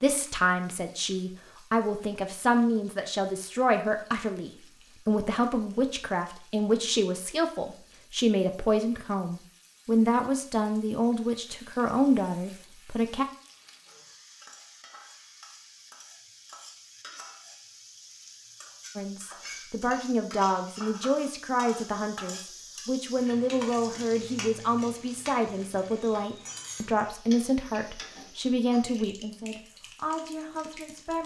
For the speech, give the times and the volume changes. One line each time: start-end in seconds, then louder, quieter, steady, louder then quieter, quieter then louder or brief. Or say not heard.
0.0-13.2 steady
18.9-31.2 steady.